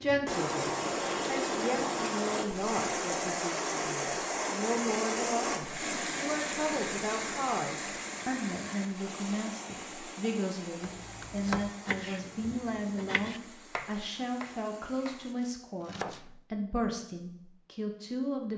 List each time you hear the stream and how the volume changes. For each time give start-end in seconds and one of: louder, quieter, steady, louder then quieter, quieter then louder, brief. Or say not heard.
0.0-15.3 quieter.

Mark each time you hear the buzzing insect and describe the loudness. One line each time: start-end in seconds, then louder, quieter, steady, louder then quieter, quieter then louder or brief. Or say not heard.
not heard.